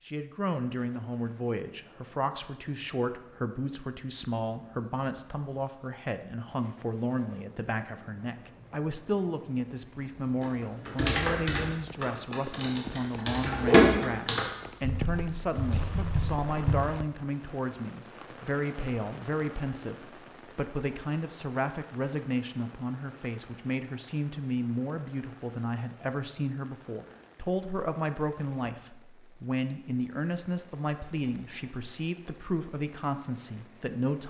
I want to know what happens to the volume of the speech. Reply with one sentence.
The volume of the speech stays about the same.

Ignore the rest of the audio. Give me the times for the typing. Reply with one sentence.
The typing can be heard from 10.8 to 16.8 s.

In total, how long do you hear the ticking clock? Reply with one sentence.
The ticking clock can't be heard in this clip.